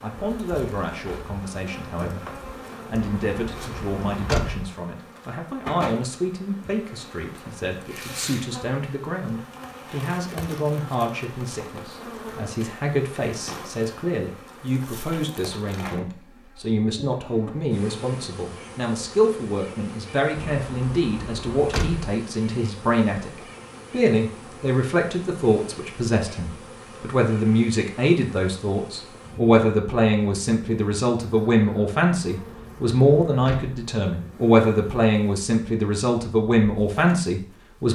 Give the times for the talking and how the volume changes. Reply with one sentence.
You can hear the talking from 0.0 to 37.9 s, getting louder.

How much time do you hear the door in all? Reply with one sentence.
You can hear the door for 5 seconds altogether.